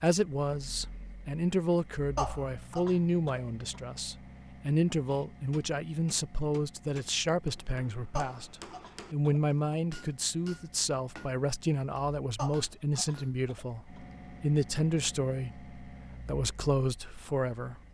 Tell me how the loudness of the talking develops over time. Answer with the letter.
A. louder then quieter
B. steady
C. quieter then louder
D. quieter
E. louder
B.